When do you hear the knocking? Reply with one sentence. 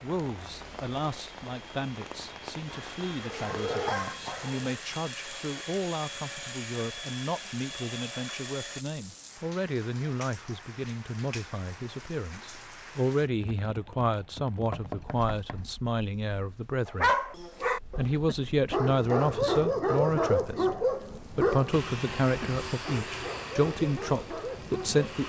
You can hear the knocking from 3.5 to 4.5 s and from 14.7 to 15.8 s.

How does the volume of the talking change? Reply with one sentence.
The loudness of the talking goes up.